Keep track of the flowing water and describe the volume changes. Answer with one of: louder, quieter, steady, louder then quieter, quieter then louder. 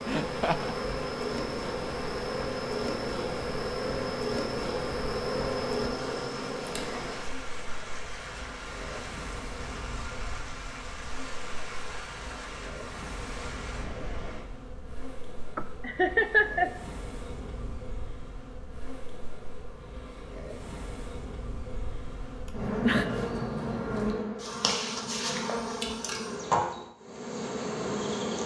steady.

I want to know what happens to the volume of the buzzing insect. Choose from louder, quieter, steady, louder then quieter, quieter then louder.
quieter then louder.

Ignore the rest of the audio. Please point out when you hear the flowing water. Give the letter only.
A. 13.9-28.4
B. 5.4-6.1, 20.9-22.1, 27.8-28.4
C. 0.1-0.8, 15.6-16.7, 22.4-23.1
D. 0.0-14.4
D.